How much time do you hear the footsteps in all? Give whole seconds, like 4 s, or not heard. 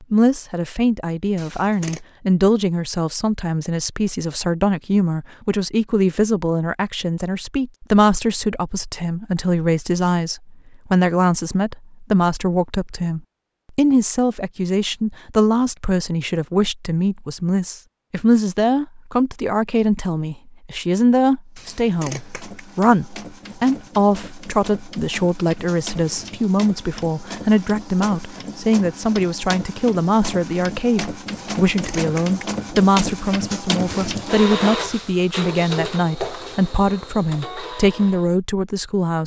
not heard.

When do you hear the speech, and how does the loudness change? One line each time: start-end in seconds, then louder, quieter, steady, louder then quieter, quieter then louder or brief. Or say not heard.
0.1-39.2 steady.